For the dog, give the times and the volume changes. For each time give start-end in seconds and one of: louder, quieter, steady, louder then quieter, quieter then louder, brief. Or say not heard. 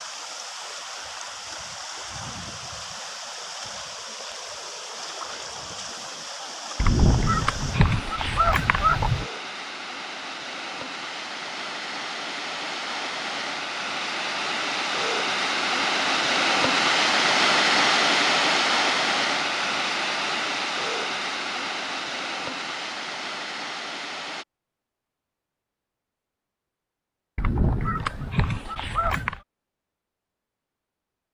not heard.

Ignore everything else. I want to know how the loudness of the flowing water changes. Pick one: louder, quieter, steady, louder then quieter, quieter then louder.
louder then quieter.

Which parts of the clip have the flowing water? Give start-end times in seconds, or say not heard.
0.0-24.4.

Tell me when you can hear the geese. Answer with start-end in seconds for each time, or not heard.
6.8-9.2, 27.4-29.4.